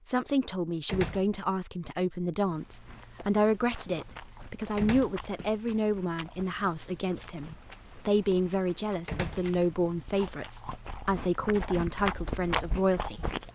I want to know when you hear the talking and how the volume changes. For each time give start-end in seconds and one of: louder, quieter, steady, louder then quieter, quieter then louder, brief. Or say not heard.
0.1-13.3 steady.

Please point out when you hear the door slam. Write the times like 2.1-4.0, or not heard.
0.8-1.4, 4.8-5.3, 9.1-9.6.